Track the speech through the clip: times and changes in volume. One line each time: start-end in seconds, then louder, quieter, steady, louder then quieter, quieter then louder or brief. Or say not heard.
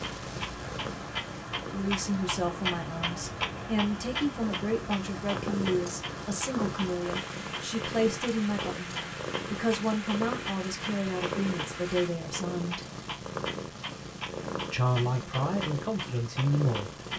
1.7-12.8 steady
14.7-16.9 brief.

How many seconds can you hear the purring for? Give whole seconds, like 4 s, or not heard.
17 s.